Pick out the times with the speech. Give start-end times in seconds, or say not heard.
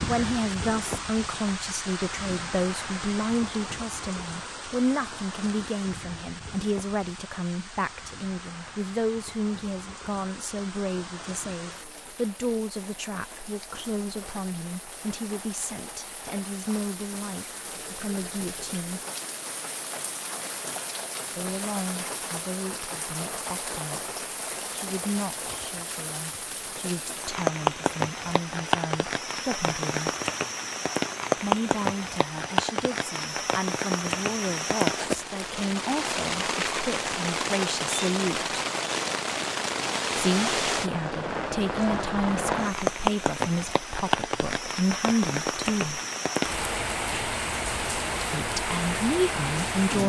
0.1-19.1, 21.4-30.1, 31.4-38.5, 40.1-46.0, 48.3-50.0.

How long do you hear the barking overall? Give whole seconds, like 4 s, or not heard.
not heard.